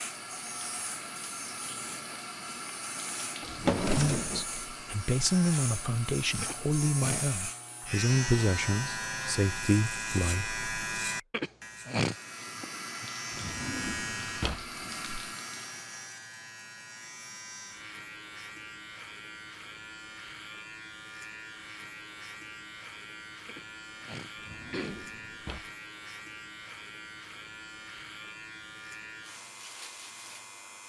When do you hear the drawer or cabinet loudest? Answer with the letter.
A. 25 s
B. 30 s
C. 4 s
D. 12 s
C.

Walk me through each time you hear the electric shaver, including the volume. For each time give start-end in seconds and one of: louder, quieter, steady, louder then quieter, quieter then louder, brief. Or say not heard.
0.0-30.8 louder then quieter.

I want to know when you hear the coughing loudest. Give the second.
12 s.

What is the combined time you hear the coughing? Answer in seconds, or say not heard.
3 s.